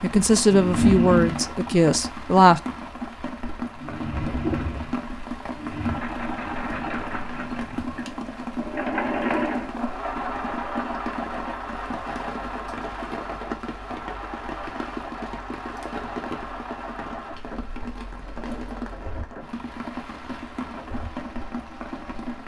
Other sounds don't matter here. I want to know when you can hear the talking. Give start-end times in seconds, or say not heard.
0.0-2.6.